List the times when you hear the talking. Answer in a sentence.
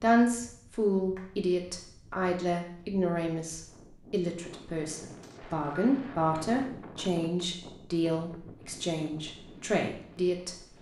The talking can be heard from 0.0 to 10.6 s.